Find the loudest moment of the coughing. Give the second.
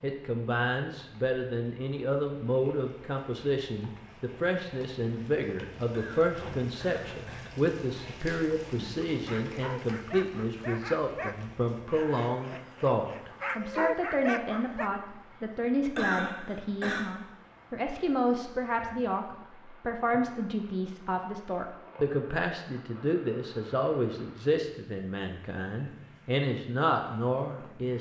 16 s.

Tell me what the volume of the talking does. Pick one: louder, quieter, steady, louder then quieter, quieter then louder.
steady.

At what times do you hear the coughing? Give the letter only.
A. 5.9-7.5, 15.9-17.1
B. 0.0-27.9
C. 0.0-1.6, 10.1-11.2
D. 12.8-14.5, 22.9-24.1
A.